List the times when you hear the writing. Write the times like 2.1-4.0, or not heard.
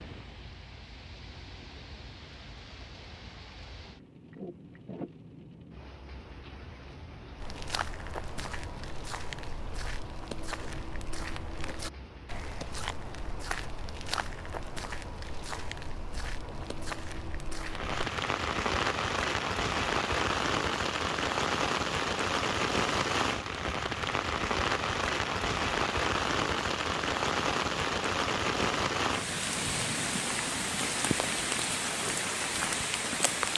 not heard.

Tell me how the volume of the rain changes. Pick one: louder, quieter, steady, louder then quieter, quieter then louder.
louder.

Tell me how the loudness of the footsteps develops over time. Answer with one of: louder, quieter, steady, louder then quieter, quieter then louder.
steady.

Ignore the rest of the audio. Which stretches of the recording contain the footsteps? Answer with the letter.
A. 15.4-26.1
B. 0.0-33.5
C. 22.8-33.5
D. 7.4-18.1
D.